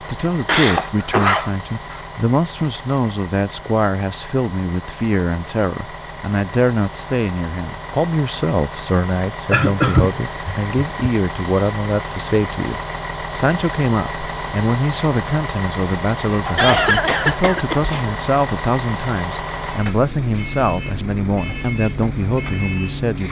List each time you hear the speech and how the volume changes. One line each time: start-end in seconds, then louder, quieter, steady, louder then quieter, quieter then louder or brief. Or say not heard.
0.1-23.2 steady.